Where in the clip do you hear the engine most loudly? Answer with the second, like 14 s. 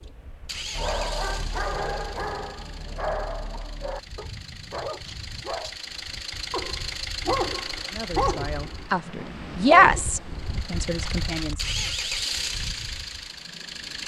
12 s.